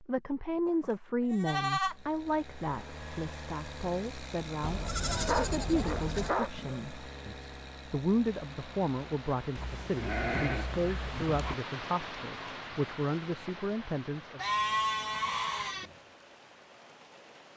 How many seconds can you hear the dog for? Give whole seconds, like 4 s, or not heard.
2 s.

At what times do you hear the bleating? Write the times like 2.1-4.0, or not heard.
0.7-1.9, 4.6-6.3, 9.6-11.6, 14.3-15.8.